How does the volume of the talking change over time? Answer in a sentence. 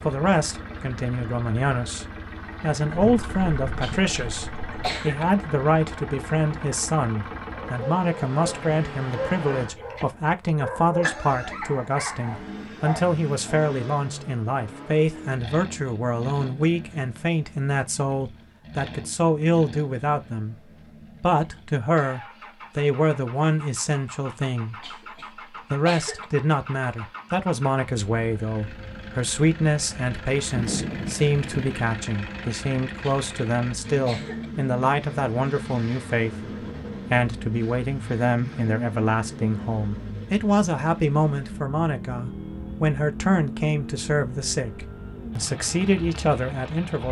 The loudness of the talking stays about the same.